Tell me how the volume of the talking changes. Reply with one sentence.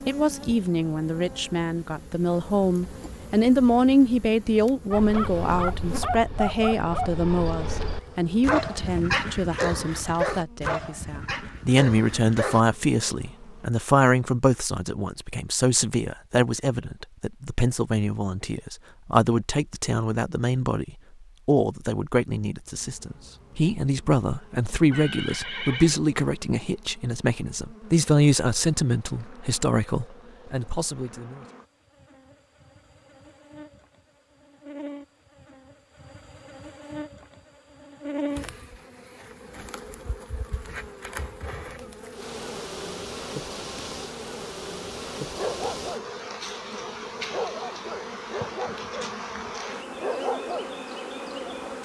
The volume of the talking stays about the same.